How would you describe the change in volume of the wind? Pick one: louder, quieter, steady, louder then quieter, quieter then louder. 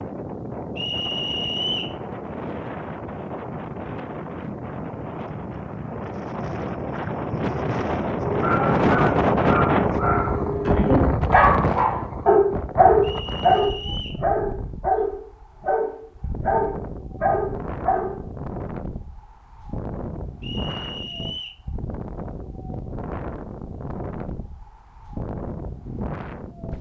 louder then quieter.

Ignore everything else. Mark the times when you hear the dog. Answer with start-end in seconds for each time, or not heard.
8.2-18.2.